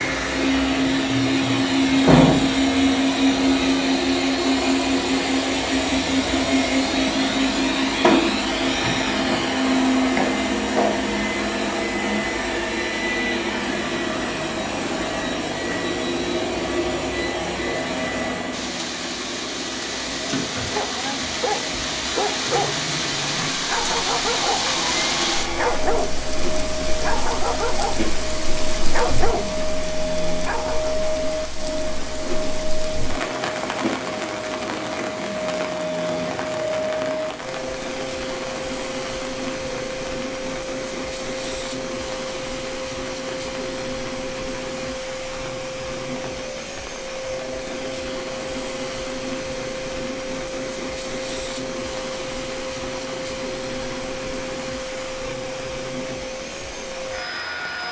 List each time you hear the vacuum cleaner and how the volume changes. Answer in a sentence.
The vacuum cleaner can be heard from 0.0 to 57.8 s, getting quieter.